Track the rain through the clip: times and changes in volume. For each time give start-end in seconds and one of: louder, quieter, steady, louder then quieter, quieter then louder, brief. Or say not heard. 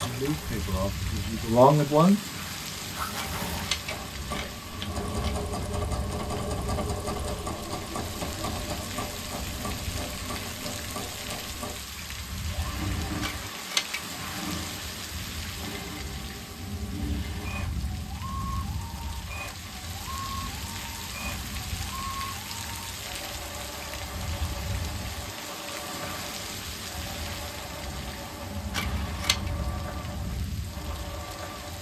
0.0-31.7 steady.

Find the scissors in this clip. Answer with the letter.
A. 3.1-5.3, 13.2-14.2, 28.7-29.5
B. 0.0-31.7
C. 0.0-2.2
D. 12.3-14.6
A.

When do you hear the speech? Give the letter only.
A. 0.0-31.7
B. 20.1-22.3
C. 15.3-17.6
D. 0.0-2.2
D.